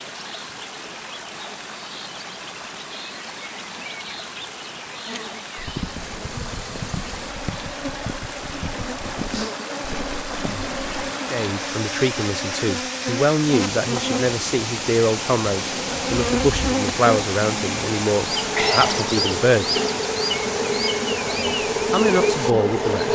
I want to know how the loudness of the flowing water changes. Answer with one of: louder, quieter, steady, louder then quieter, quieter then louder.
louder.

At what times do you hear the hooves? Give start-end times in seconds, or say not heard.
5.5-11.1.